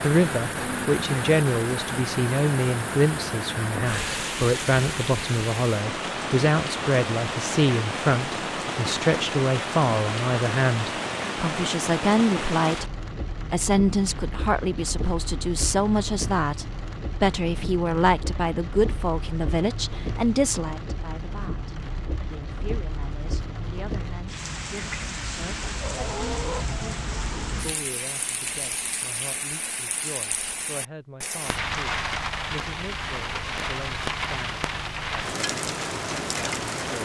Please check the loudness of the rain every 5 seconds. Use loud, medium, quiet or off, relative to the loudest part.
loud, loud, loud, medium, medium, loud, loud, loud.